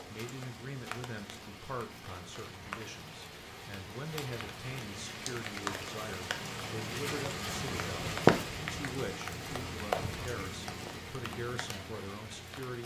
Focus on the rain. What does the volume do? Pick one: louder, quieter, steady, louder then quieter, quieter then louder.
louder then quieter.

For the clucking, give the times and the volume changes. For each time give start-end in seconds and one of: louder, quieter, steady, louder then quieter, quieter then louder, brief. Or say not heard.
not heard.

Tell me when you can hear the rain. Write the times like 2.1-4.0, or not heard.
0.0-12.8.